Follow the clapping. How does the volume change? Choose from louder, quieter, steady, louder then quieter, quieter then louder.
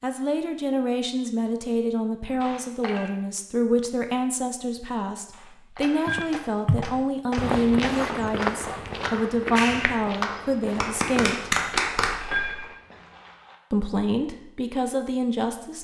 louder.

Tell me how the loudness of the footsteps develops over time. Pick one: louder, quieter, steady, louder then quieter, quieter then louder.
quieter.